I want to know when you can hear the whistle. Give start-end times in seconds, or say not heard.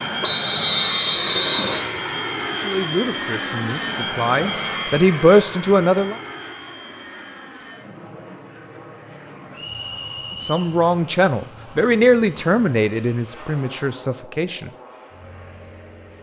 0.2-1.9, 9.5-10.7.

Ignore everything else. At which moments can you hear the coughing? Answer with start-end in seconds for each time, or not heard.
not heard.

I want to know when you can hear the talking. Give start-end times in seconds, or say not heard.
2.5-6.2, 10.3-14.7.